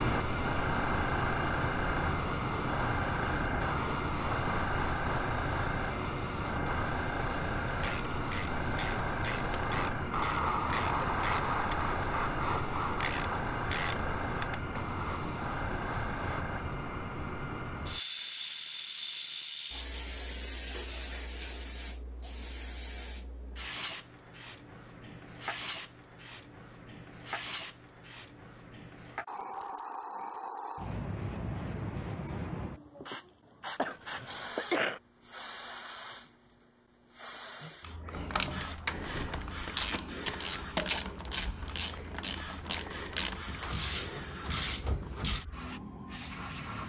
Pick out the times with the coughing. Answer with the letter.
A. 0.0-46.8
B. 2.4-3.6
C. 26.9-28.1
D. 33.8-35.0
D.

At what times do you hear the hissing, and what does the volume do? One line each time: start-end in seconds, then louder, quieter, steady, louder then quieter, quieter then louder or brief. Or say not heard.
0.0-46.8 quieter.